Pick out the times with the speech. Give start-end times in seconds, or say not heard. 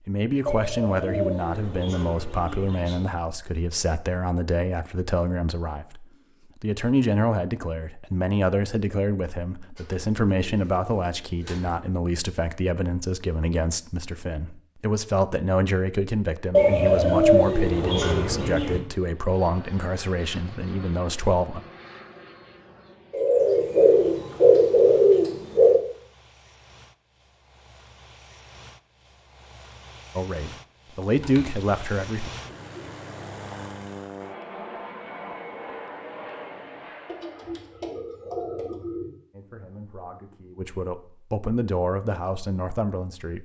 0.1-21.6, 30.1-32.3, 39.3-43.4.